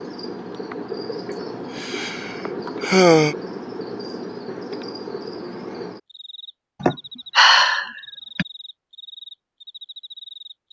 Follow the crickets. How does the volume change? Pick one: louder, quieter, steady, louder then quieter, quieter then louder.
quieter.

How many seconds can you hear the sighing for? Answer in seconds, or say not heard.
3 s.